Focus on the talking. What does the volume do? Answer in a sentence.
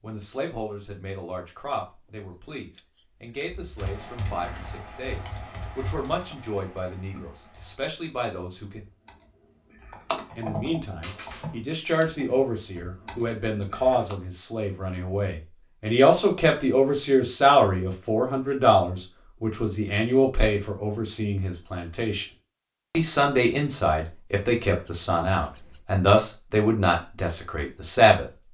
The loudness of the talking goes up.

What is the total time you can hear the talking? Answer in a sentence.
The talking can be heard for 26 seconds in total.